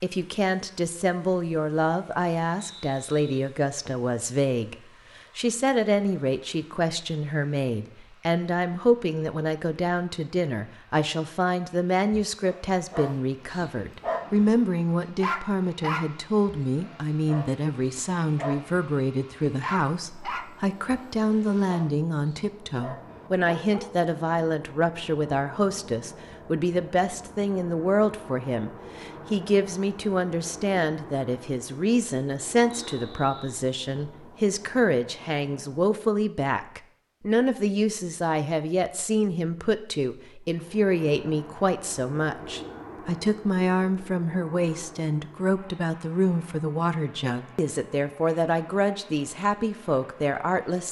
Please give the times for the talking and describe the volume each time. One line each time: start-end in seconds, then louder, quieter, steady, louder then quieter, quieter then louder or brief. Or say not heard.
0.0-50.8 steady.